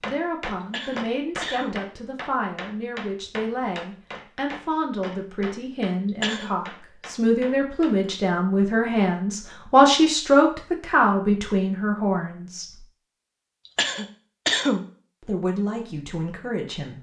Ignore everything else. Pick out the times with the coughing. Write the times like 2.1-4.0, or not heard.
0.6-1.8, 6.0-6.5, 13.7-14.8.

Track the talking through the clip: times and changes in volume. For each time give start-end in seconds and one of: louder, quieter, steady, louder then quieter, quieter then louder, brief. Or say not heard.
0.0-12.8 louder
15.2-16.9 brief.